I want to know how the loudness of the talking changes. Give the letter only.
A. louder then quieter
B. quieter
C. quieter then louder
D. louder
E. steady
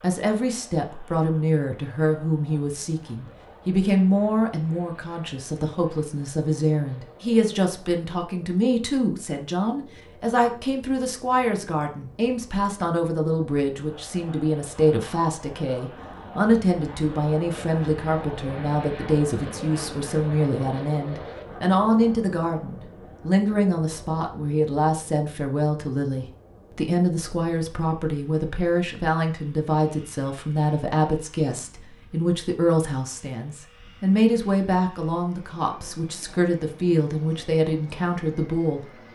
E.